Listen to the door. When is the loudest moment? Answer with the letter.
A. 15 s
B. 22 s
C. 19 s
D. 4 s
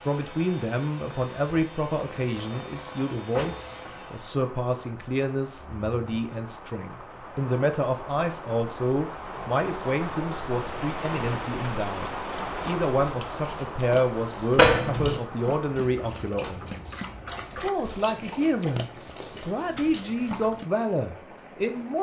A.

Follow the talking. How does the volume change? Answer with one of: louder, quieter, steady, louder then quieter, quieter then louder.
steady.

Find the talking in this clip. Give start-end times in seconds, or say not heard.
0.0-21.9.